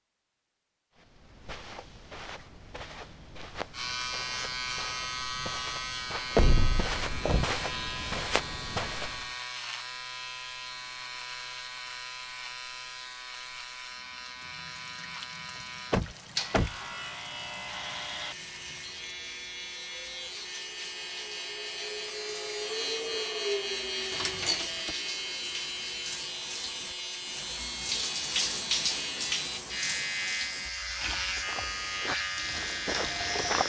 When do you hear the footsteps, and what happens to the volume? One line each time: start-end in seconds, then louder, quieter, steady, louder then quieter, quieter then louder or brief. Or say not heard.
0.9-9.3 louder
31.3-33.6 brief.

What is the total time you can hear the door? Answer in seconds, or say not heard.
3 s.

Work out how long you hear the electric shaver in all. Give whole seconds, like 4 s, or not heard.
30 s.